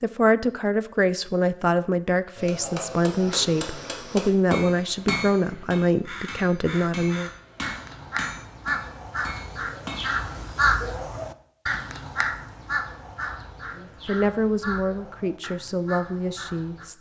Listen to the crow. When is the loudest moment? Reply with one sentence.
The loudest moment of the crow is at 11 seconds.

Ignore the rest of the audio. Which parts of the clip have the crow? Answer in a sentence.
The crow can be heard from 5.5 to 16.9 s.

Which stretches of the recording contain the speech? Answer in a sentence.
You can hear the speech from 0.0 to 7.3 s and from 13.8 to 16.9 s.